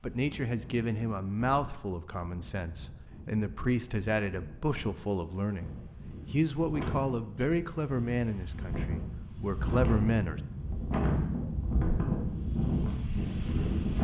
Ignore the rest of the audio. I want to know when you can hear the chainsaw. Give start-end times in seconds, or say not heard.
not heard.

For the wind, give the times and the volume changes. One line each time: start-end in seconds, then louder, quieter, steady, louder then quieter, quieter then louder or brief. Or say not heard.
0.0-13.9 louder.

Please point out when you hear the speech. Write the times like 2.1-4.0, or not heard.
0.0-10.4.